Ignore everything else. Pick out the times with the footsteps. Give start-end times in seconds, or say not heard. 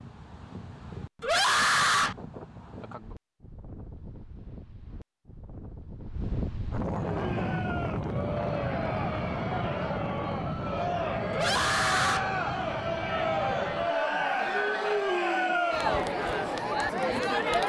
not heard.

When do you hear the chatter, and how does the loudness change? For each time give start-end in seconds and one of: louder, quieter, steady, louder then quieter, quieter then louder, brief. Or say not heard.
7.0-17.6 louder.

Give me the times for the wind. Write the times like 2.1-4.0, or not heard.
0.0-13.9.